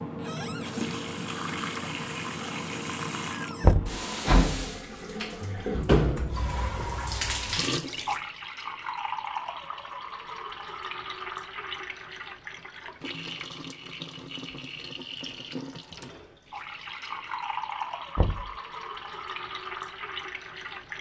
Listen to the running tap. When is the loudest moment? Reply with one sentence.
The volume of the running tap peaks at 6 seconds.